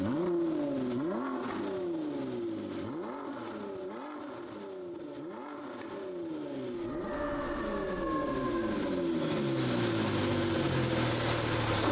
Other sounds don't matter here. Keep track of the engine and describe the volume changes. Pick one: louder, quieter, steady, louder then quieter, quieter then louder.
quieter then louder.